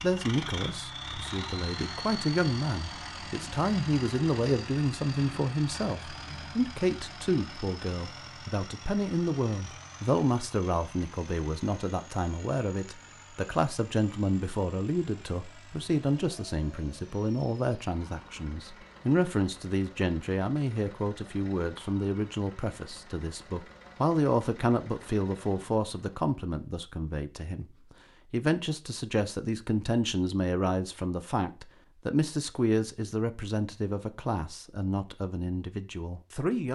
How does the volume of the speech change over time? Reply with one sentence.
The loudness of the speech stays about the same.